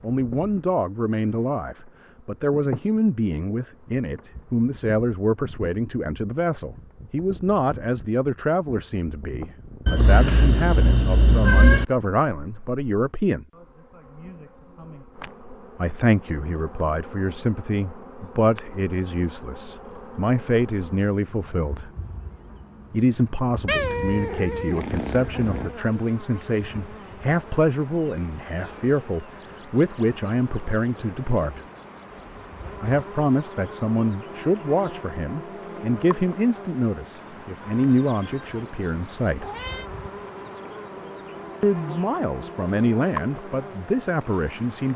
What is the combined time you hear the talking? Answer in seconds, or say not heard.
38 s.